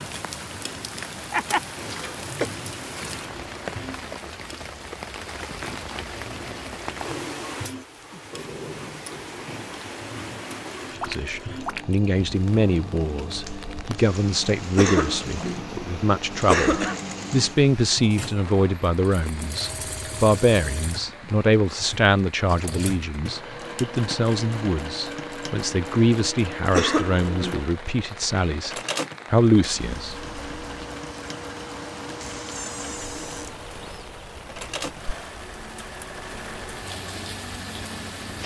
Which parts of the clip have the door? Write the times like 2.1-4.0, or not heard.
32.2-33.5.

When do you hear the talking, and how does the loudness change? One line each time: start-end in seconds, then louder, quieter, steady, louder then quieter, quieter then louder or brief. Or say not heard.
11.1-30.9 steady.